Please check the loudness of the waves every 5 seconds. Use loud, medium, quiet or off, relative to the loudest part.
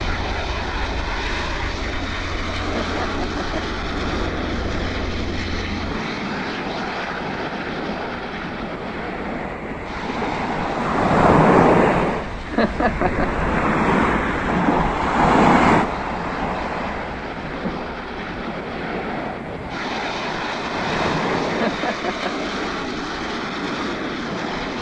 quiet, quiet, loud, loud, medium.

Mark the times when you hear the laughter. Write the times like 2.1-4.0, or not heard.
2.6-3.6, 12.4-13.3, 21.4-22.5.